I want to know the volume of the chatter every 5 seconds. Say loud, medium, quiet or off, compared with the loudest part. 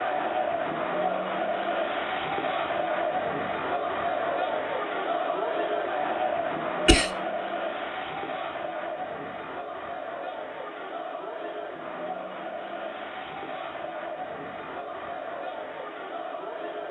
loud, loud, medium, medium.